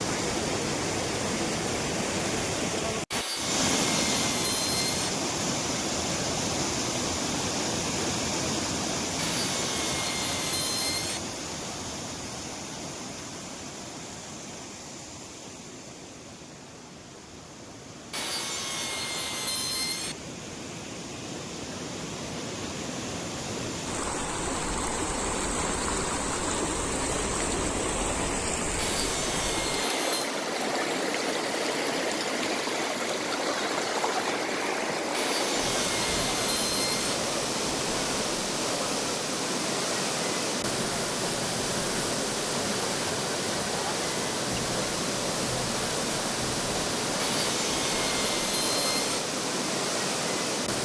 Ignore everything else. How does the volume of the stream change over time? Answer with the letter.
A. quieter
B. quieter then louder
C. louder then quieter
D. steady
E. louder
B.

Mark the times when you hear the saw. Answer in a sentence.
The saw can be heard from 3.1 to 5.1 s, from 9.2 to 11.2 s, from 18.1 to 20.1 s, from 28.8 to 30.3 s, from 35.1 to 37.1 s and from 47.1 to 49.2 s.